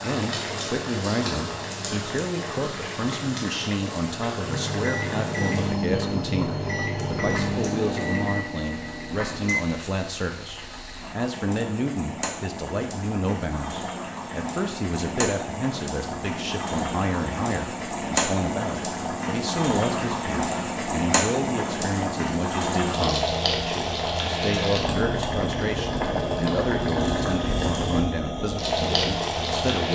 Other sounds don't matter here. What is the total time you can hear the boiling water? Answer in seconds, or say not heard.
30 s.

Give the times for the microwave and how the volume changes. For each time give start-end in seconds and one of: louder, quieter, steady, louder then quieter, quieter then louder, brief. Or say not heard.
4.5-9.6 quieter.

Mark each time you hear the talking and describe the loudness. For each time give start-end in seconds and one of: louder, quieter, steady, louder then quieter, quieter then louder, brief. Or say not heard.
0.0-29.9 steady.